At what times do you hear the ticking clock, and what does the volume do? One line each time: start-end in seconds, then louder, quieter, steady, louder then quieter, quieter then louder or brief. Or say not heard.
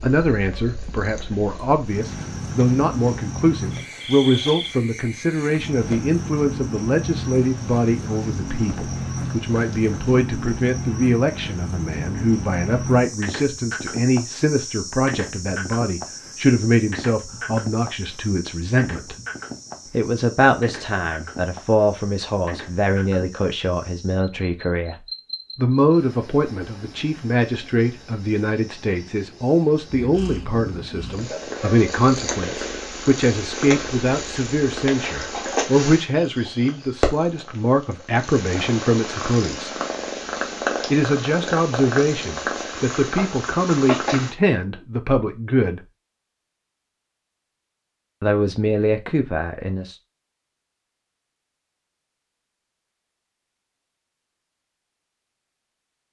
not heard.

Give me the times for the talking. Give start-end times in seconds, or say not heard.
0.0-19.1, 19.9-39.8, 40.9-45.9, 48.2-50.0.